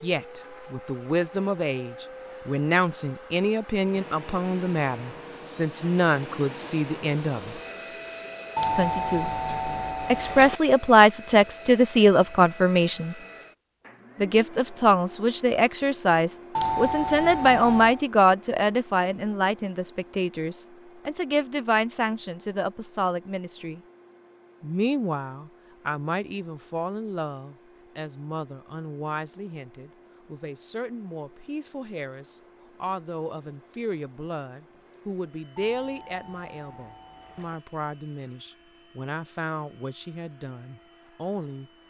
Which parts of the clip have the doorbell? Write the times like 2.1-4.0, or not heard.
8.6-10.6, 16.6-18.0, 35.5-37.6.